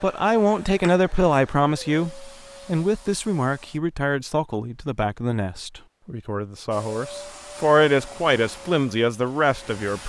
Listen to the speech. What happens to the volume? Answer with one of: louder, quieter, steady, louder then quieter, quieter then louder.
quieter then louder.